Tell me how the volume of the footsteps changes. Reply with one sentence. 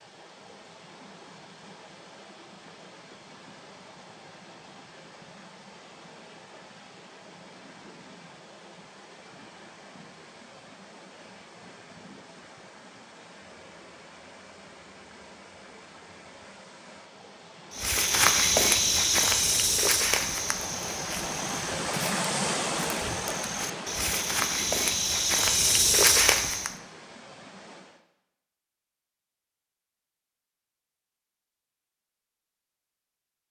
The volume of the footsteps goes down, then up.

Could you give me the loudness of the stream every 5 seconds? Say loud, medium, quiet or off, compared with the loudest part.
quiet, quiet, quiet, quiet, loud, quiet, off.